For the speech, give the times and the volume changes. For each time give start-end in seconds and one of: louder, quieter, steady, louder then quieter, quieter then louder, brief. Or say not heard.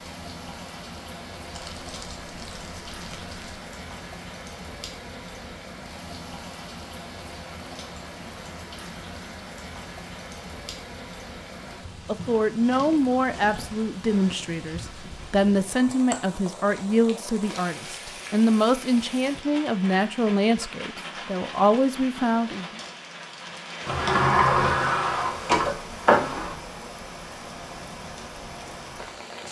12.1-22.8 steady.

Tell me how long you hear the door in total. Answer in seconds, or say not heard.
3 s.